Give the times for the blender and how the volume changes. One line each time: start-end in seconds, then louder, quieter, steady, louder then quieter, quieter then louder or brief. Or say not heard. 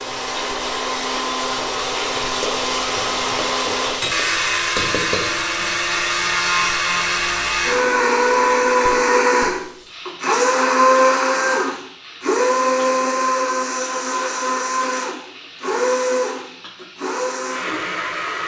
0.0-18.4 louder then quieter.